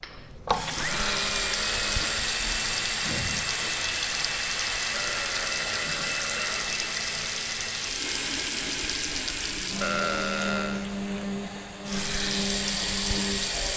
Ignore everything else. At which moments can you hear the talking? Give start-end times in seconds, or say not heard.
not heard.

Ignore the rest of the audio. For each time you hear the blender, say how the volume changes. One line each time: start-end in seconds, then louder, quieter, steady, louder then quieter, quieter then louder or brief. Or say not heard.
0.0-13.7 steady.